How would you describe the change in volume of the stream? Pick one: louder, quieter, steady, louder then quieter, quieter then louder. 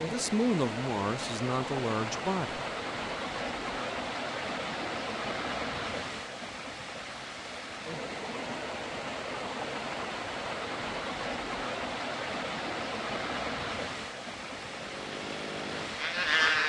steady.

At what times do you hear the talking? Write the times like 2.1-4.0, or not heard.
0.0-2.6.